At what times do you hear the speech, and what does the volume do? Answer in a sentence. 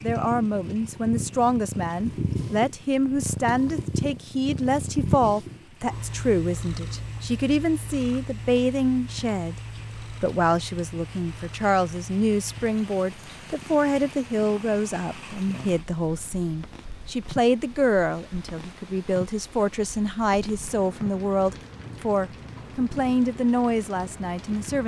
You can hear the speech from 0.0 to 24.8 s, at a steady volume.